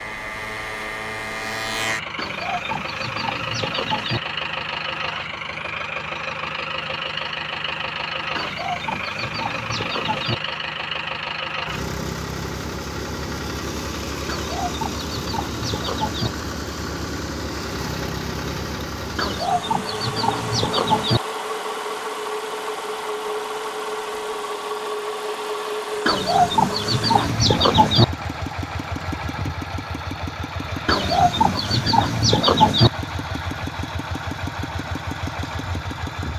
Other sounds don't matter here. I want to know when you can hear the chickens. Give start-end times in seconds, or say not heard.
2.1-4.2, 8.3-10.3, 14.2-16.3, 19.1-21.2, 26.1-28.1, 30.9-32.9.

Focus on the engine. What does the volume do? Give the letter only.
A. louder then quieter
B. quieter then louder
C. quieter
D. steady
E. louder
D.